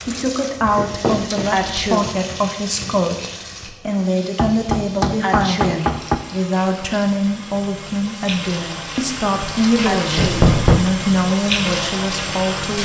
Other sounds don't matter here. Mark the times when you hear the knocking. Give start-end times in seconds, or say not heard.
0.8-1.4, 4.3-6.2, 10.2-10.8.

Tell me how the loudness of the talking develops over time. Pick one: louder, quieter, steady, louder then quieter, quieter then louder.
steady.